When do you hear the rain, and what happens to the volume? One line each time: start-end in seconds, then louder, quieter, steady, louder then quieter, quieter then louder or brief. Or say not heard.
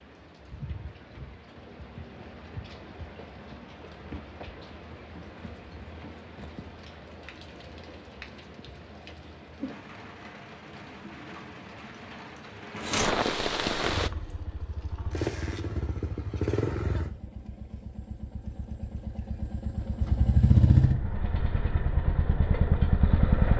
0.0-14.1 louder.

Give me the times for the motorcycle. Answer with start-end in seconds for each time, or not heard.
13.9-23.5.